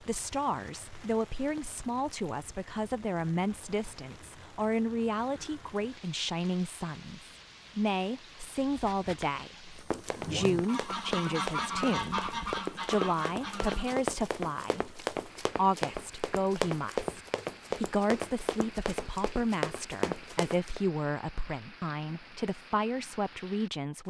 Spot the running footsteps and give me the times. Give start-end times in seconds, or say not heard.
8.8-20.8.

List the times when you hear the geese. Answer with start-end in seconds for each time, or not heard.
10.1-14.0.